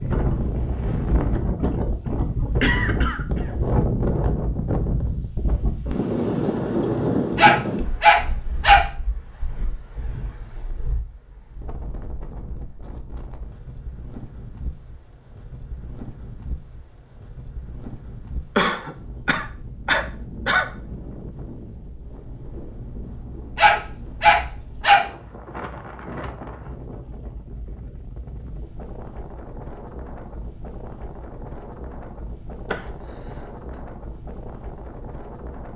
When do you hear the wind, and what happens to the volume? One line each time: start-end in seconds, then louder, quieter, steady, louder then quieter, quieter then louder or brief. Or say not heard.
0.0-35.7 quieter.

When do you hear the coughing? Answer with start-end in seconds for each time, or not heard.
2.6-3.8, 18.6-20.7, 32.7-33.8.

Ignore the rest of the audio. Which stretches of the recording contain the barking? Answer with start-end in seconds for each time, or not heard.
7.3-8.9, 23.6-25.1.